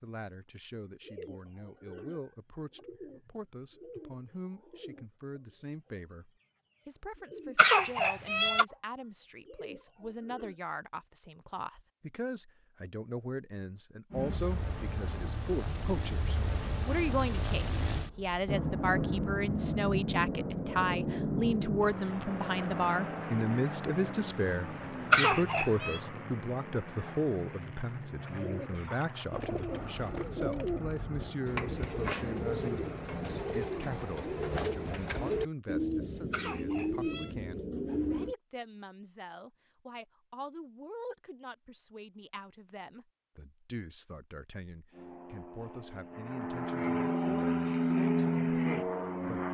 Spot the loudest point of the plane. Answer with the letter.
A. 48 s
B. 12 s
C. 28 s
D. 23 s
A.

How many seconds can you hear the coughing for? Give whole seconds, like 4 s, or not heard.
3 s.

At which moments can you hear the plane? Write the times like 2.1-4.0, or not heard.
14.1-34.0, 44.9-49.4.